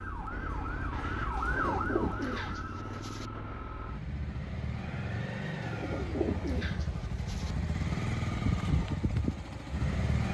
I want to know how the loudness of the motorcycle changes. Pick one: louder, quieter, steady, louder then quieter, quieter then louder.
louder.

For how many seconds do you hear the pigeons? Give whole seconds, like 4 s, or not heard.
4 s.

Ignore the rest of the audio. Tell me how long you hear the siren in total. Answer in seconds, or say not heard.
3 s.